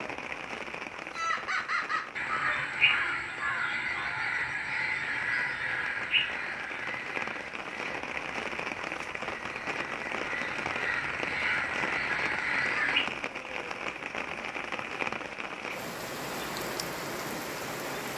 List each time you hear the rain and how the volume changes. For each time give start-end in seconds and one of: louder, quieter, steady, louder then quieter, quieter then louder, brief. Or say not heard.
0.0-18.1 louder.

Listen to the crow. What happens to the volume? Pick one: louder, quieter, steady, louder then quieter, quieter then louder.
quieter then louder.